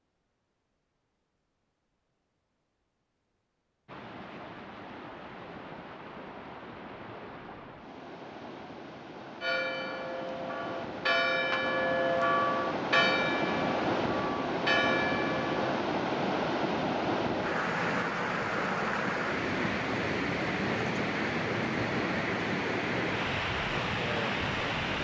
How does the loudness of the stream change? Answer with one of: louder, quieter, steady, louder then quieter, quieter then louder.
louder.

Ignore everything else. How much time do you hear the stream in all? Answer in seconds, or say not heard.
21 s.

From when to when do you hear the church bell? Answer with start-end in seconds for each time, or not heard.
9.4-15.6.